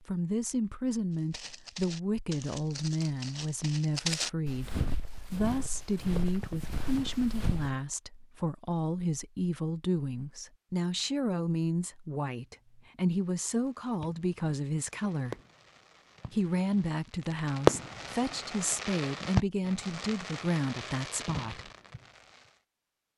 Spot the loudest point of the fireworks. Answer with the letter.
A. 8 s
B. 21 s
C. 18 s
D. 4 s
C.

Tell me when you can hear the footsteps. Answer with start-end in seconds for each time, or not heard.
1.1-7.8.